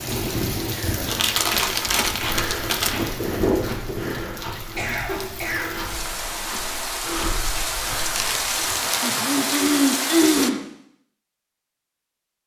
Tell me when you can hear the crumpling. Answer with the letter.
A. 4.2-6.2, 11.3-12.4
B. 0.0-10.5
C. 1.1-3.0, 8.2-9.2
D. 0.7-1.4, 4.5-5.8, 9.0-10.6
C.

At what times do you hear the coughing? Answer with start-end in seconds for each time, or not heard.
0.7-1.4, 4.5-5.8, 9.0-10.6.